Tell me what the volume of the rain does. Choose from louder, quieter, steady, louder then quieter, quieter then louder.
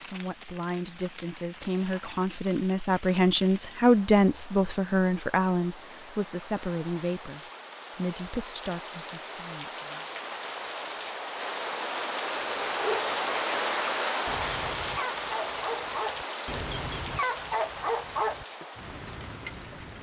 louder then quieter.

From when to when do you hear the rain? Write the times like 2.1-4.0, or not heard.
0.0-19.9.